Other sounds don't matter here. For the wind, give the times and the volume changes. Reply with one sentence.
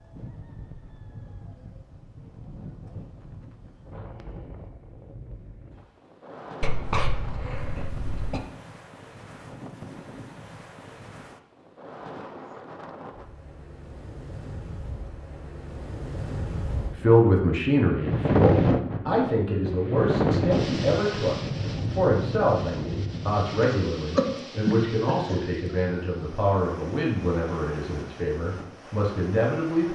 The wind can be heard from 0.0 to 29.9 s, getting louder then quieter.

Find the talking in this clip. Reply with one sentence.
The talking can be heard from 17.0 to 29.9 s.